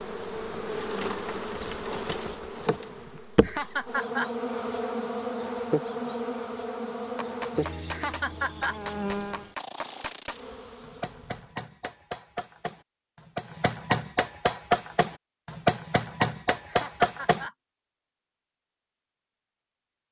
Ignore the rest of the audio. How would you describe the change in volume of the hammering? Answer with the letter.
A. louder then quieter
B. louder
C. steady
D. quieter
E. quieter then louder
B.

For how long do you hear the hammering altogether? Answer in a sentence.
You can hear the hammering for 10 seconds altogether.